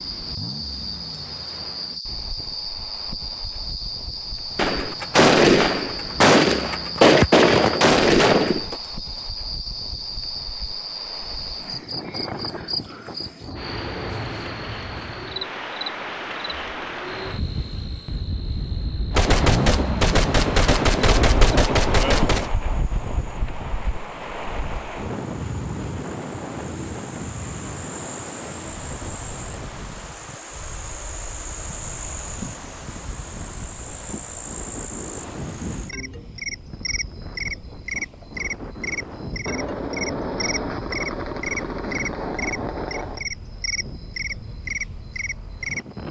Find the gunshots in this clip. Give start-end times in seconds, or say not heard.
4.5-8.8, 19.1-22.5, 39.5-43.2.